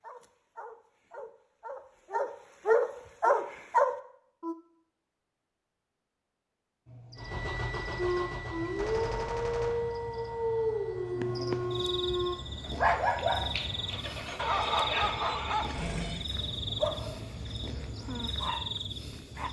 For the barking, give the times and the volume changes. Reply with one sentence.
The barking can be heard from 0.0 to 4.5 s, getting louder; and from 8.0 to 19.4 s, getting quieter.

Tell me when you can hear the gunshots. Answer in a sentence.
You can hear the gunshots from 8.8 to 9.9 s.